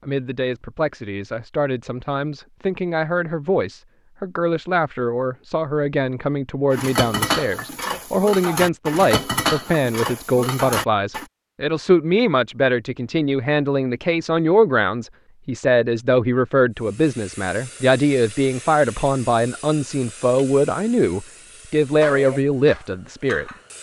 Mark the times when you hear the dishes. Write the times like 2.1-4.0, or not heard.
6.7-11.2, 22.0-23.6.